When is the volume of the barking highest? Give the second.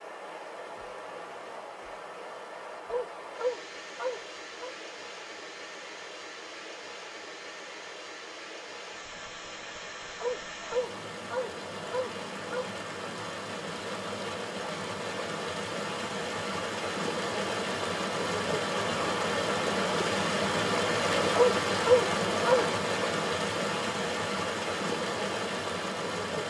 22 s.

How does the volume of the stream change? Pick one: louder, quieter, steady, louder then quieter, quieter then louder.
louder.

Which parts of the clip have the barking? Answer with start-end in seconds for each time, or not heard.
2.9-4.8, 10.2-12.7, 21.3-22.6.